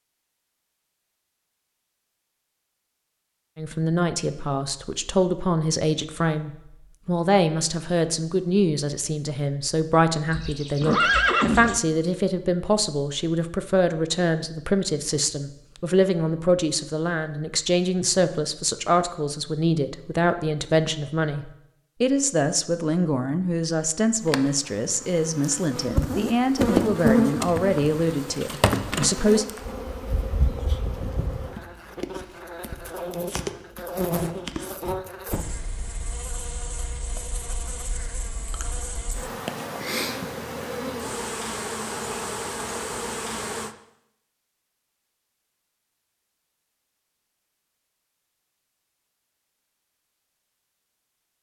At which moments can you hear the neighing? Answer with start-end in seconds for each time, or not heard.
10.3-11.8.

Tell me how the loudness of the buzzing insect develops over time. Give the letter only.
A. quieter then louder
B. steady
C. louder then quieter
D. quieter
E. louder
A.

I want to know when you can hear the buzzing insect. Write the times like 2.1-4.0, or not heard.
24.1-43.8.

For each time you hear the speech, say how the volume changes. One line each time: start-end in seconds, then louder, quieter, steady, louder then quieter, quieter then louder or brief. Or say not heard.
3.5-29.4 steady.